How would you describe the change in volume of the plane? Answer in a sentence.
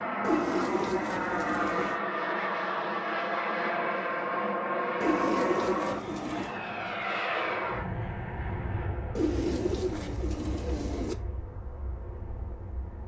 The volume of the plane goes down.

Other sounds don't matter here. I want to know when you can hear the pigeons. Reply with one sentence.
The pigeons can be heard from 0.2 to 2.0 s, from 5.0 to 6.6 s and from 9.2 to 11.2 s.